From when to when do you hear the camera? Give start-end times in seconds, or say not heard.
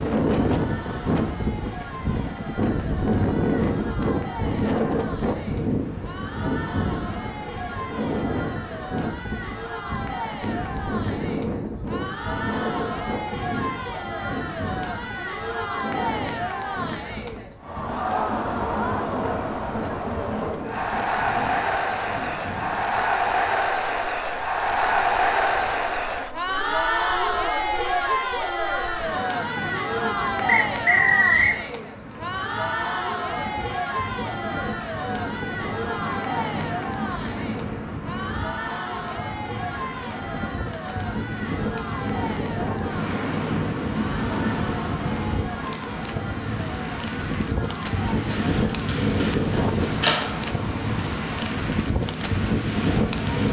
48.3-50.2.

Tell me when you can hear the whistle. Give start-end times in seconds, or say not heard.
30.4-31.6.